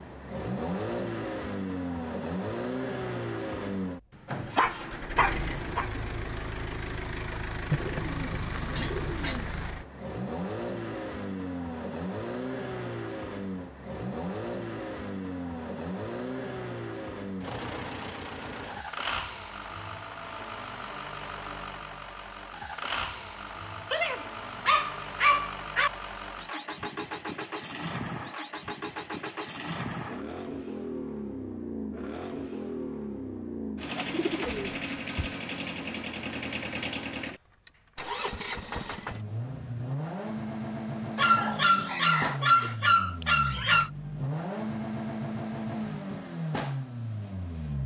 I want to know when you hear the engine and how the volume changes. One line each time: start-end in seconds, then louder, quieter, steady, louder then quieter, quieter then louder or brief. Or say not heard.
0.0-47.8 steady.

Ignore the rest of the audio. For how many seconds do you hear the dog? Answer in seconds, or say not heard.
6 s.